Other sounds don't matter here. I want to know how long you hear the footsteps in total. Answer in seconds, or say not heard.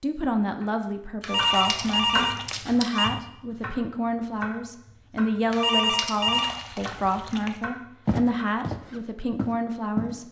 2 s.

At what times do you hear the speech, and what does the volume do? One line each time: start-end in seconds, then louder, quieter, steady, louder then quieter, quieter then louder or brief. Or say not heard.
0.0-10.2 steady.